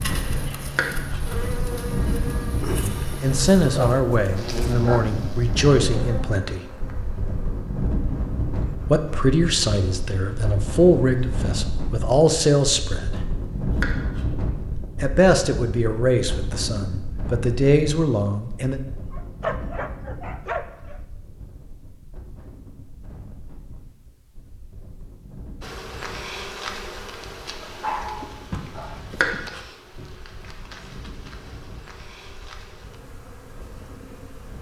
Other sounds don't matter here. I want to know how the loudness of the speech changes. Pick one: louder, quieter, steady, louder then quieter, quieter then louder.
steady.